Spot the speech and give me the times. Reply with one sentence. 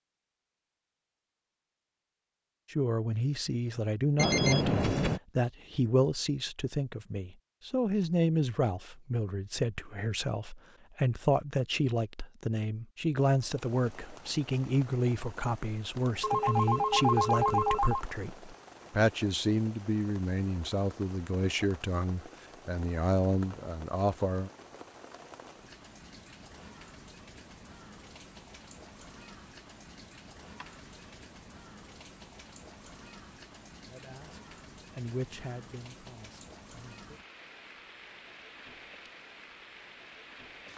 You can hear the speech from 2.7 to 24.5 s and from 33.9 to 37.2 s.